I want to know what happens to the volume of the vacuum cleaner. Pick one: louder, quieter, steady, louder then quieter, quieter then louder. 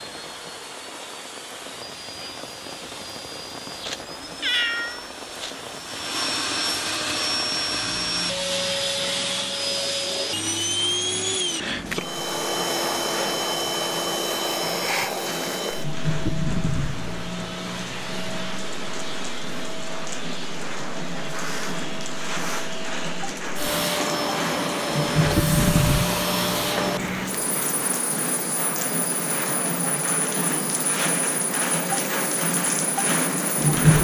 louder then quieter.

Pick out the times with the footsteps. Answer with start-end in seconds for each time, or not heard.
not heard.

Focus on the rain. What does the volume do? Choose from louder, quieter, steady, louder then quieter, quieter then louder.
louder.